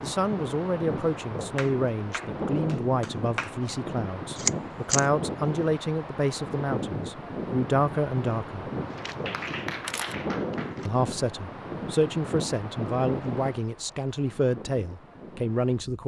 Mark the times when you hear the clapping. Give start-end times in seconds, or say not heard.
1.6-3.5, 9.2-10.8.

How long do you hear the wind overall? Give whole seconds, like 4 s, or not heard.
16 s.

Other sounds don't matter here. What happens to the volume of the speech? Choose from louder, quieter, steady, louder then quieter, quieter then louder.
steady.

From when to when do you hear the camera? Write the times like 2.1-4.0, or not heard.
4.3-5.0, 8.9-10.9.